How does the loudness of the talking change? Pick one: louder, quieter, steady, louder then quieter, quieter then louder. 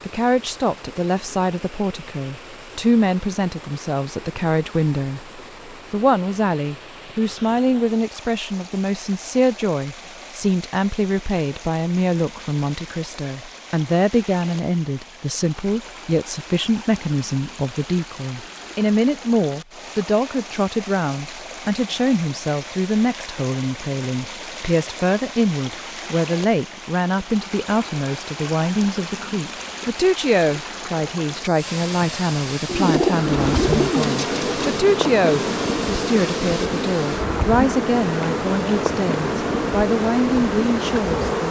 steady.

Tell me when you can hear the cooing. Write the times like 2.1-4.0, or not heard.
32.6-35.1.